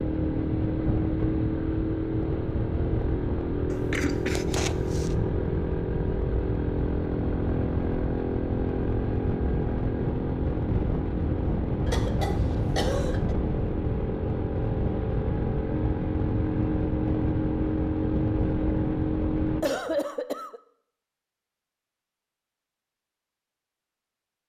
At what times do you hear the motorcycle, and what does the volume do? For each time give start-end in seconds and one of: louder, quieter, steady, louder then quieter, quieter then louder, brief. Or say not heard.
0.0-19.6 steady.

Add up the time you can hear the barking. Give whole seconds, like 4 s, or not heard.
not heard.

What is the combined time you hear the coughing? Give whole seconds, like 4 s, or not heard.
4 s.